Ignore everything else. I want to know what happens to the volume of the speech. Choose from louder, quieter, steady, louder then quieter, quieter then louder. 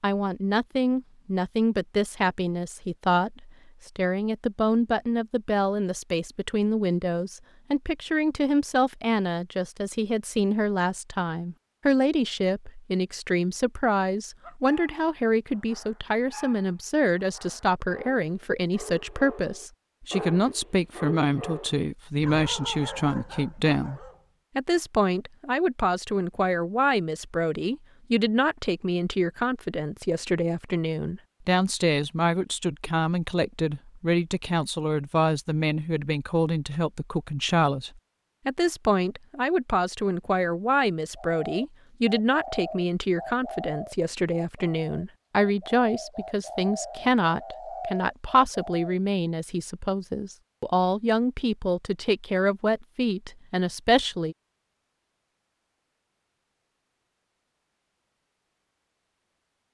steady.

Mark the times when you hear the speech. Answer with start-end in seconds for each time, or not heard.
0.0-54.4.